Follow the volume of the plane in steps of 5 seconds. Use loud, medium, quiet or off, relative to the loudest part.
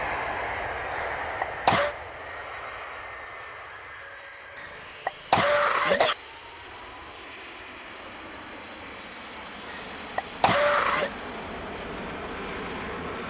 loud, medium, loud.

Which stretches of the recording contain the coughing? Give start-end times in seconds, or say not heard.
0.9-1.9, 4.5-6.2, 9.7-11.1.